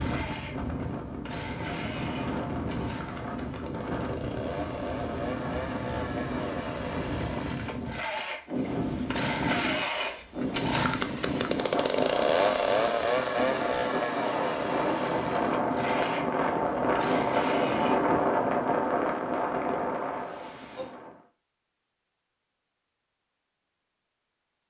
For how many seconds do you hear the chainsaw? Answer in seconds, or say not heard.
18 s.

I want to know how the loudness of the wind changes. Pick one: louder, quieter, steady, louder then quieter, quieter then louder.
louder.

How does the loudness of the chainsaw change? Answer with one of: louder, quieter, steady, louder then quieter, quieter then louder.
louder then quieter.